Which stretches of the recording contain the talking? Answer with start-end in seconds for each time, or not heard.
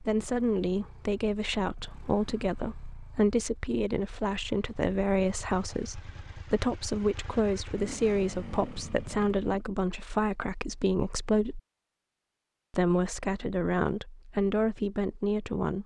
0.0-11.6, 12.7-15.8.